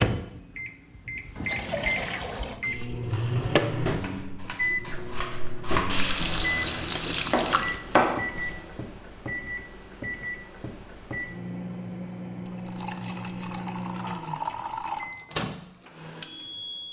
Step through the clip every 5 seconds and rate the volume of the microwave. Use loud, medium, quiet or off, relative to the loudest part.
loud, medium, medium, medium.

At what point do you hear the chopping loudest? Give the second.
8 s.